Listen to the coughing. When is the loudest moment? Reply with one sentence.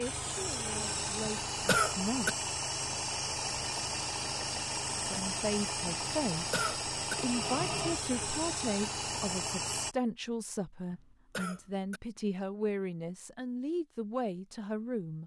The volume of the coughing peaks at 2 seconds.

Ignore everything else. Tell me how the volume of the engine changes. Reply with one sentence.
The volume of the engine stays about the same.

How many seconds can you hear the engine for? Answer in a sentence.
The engine can be heard for 10 seconds in total.